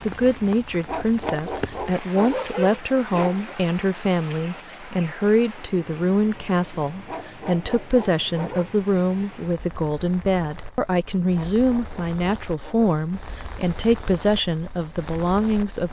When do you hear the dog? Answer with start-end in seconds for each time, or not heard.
0.8-3.5, 7.0-8.8, 11.3-12.9.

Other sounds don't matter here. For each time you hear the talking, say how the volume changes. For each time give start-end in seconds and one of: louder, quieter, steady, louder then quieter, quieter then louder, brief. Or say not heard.
0.0-15.8 steady.